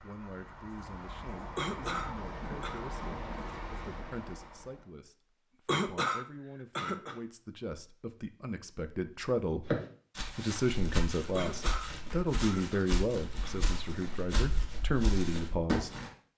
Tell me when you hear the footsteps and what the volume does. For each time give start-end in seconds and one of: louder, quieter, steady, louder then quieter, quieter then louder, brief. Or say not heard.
9.7-16.1 steady.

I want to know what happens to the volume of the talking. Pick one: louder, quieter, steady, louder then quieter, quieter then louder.
louder.